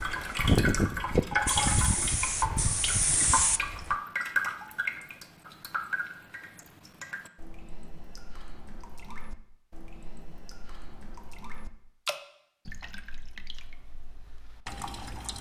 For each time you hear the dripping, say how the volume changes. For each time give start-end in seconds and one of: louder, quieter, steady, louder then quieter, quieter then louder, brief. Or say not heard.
0.0-15.3 quieter then louder.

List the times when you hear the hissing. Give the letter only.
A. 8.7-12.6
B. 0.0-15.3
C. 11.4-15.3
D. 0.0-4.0
D.